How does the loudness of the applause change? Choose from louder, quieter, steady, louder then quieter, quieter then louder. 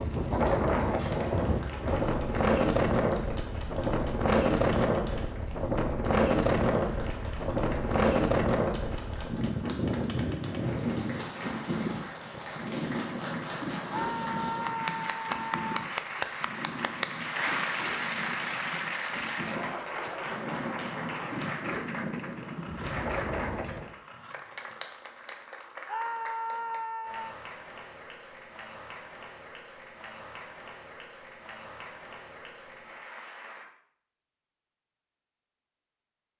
louder then quieter.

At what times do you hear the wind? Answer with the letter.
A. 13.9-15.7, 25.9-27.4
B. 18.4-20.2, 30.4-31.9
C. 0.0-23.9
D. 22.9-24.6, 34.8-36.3
C.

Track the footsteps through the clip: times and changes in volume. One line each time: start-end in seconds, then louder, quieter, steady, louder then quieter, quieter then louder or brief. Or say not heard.
not heard.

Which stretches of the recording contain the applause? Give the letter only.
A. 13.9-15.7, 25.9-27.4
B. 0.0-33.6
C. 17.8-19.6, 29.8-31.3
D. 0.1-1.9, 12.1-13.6
B.